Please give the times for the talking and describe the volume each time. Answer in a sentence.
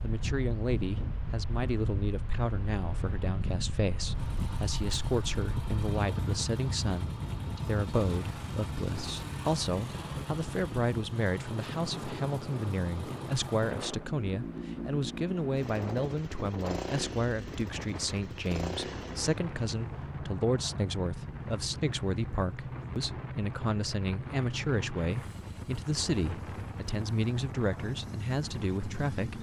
You can hear the talking from 0.0 to 29.3 s, at a steady volume.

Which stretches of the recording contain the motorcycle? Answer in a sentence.
You can hear the motorcycle from 4.1 to 29.3 s.